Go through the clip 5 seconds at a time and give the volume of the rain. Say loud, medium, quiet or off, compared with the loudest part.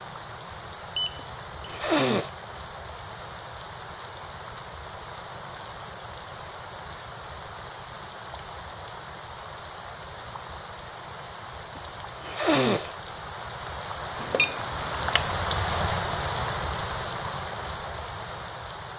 medium, medium, medium, loud.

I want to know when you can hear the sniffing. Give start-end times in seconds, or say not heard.
1.6-2.3, 11.8-12.9.